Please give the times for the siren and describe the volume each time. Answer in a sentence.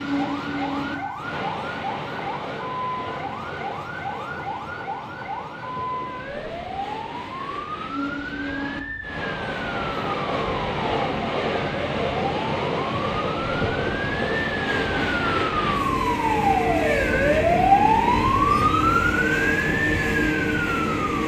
The siren can be heard from 0.0 to 21.2 s, getting louder.